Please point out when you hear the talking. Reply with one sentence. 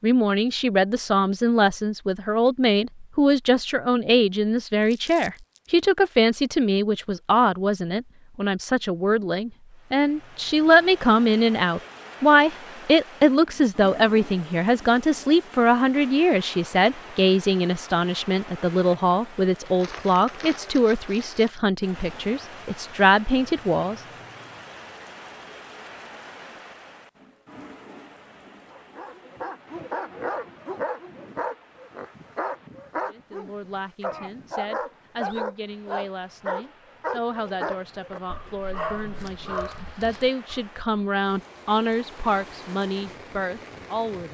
You can hear the talking from 0.0 to 24.0 s and from 33.1 to 44.3 s.